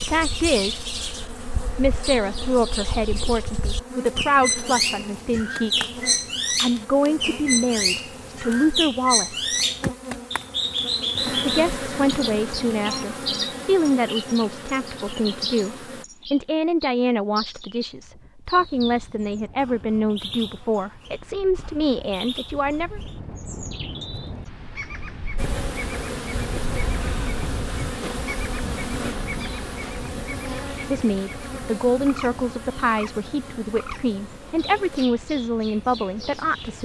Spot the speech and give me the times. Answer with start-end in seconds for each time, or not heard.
0.0-0.8, 1.8-9.5, 11.4-23.0, 30.9-36.8.